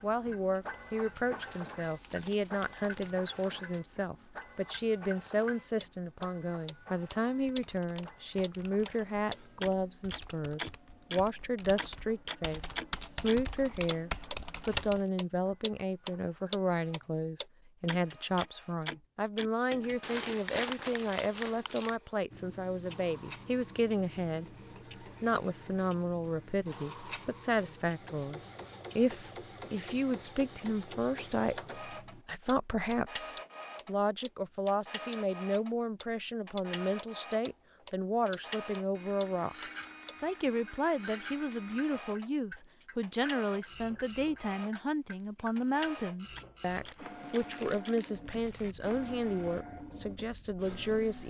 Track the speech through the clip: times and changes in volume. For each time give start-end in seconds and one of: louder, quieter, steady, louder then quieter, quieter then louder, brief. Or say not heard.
0.0-51.2 steady.